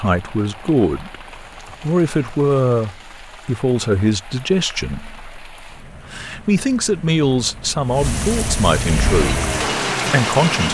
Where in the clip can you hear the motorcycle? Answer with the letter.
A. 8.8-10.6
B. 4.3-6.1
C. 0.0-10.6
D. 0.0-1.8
A.